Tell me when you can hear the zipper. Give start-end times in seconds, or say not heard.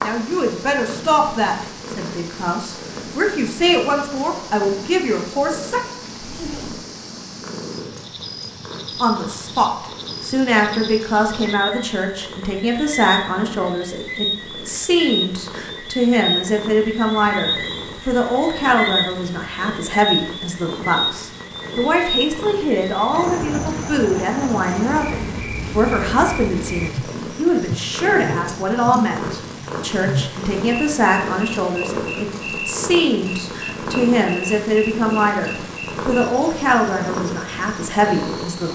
6.2-6.8.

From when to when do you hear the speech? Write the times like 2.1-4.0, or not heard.
0.0-5.8, 9.0-38.7.